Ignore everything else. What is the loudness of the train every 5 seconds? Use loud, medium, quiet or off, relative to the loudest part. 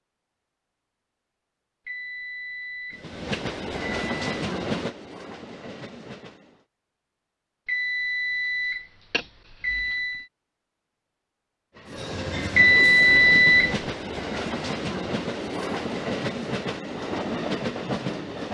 loud, quiet, loud, loud.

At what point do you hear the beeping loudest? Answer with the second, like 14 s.
13 s.